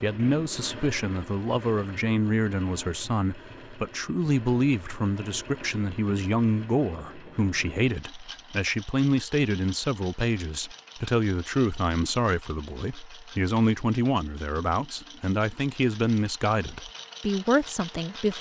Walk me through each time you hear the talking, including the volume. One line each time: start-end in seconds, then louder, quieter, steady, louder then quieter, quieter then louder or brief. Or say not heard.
0.0-18.3 steady.